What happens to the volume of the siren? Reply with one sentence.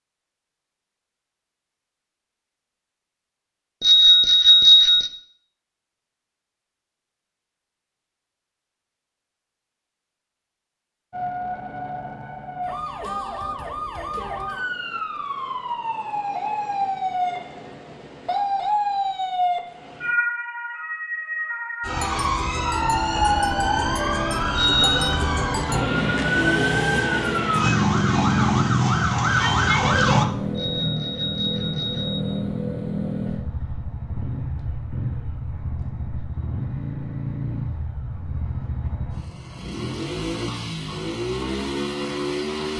The loudness of the siren goes up.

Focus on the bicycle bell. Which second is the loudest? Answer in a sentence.
The volume of the bicycle bell peaks at 5 seconds.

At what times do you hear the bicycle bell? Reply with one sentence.
You can hear the bicycle bell from 3.8 to 5.1 s, from 24.6 to 25.1 s and from 30.6 to 32.3 s.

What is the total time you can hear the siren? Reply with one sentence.
You can hear the siren for 19 seconds altogether.